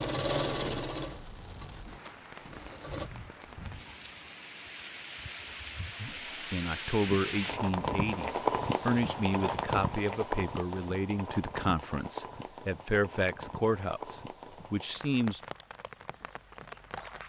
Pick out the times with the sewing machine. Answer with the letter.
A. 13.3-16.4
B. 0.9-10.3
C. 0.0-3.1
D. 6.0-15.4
C.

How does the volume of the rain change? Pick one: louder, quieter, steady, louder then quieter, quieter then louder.
louder then quieter.